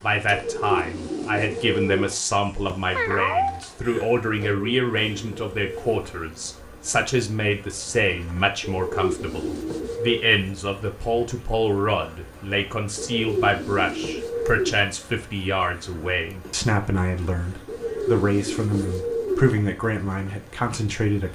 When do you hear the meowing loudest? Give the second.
3 s.